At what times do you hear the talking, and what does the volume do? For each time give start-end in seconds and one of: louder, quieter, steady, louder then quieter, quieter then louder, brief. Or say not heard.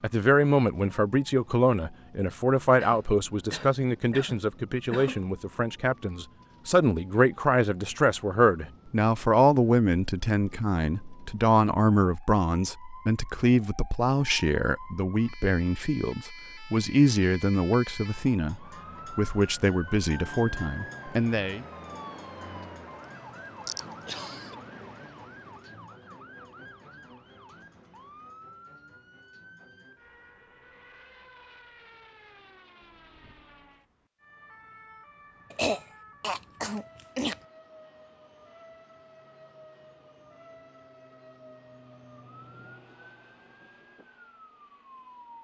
0.0-21.6 steady.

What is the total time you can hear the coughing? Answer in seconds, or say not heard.
5 s.